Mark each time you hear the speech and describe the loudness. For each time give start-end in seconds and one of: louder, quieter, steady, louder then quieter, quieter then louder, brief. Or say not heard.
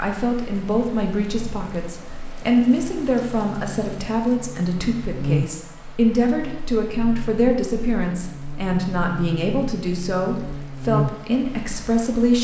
0.0-12.3 steady.